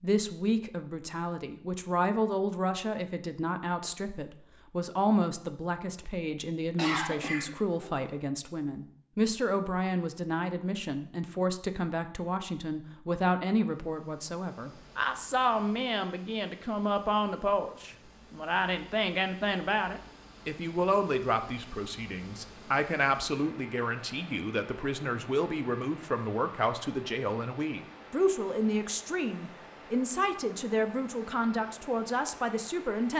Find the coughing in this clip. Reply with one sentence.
The coughing can be heard from 6.8 to 8.0 s.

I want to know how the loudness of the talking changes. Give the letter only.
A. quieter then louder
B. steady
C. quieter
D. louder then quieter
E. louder
B.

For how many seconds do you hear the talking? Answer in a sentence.
You can hear the talking for 33 seconds altogether.